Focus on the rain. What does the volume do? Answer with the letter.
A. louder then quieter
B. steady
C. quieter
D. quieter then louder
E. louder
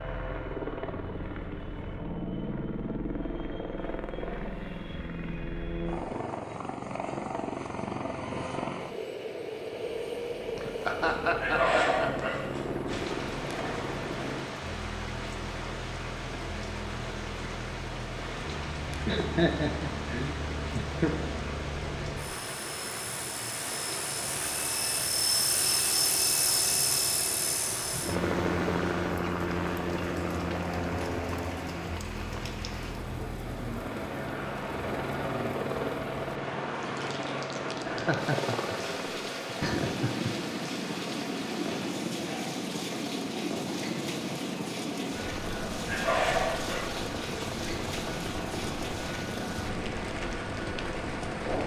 B.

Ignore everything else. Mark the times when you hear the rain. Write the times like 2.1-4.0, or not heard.
12.8-51.6.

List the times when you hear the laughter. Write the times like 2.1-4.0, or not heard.
10.6-12.3, 19.1-21.1, 37.9-40.3.